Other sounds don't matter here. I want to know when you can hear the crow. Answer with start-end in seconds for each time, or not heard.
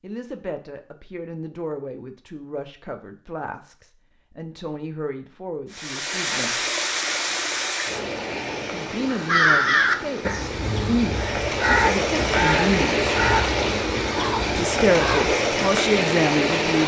9.1-15.3.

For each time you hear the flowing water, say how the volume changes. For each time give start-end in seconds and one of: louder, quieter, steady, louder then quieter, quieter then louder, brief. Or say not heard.
5.7-16.8 quieter then louder.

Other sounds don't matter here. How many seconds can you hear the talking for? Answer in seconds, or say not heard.
13 s.